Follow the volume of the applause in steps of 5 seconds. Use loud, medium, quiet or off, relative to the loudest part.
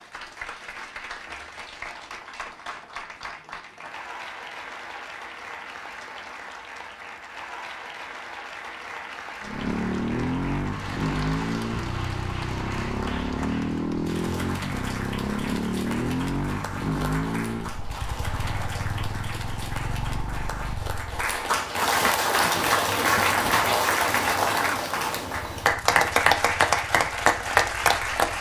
quiet, quiet, quiet, quiet, loud, loud.